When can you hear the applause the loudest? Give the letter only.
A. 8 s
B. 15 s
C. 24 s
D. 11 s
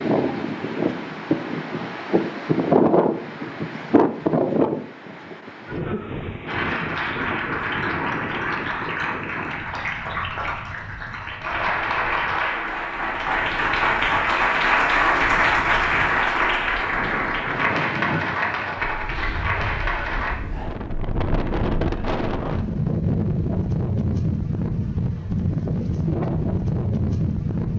B.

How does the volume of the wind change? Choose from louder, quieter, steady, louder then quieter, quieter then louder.
quieter then louder.